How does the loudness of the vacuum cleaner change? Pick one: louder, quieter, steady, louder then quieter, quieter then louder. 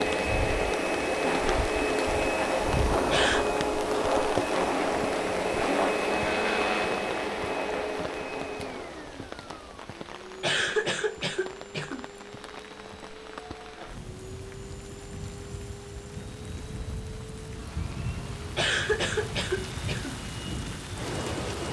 quieter.